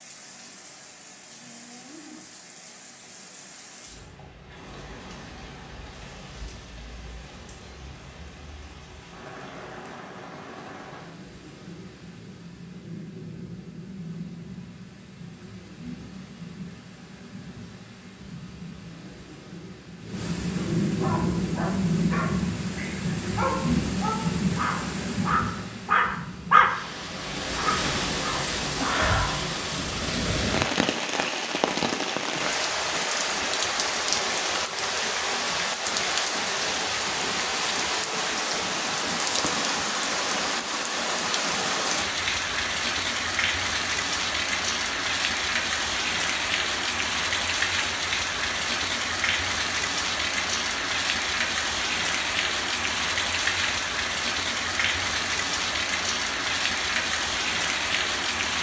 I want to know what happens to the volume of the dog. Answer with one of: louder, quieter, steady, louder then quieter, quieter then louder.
louder then quieter.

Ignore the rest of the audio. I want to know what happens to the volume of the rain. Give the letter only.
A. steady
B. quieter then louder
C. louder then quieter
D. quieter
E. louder
E.